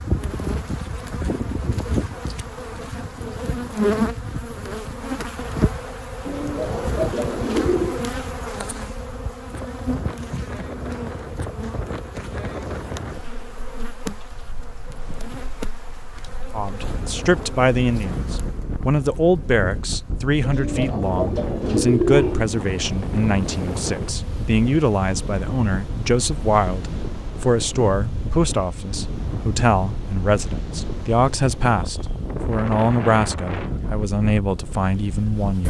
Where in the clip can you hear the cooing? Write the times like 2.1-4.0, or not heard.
6.2-8.0, 20.4-22.4.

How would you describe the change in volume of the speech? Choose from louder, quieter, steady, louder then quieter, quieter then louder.
steady.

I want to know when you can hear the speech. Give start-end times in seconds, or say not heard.
16.5-35.6.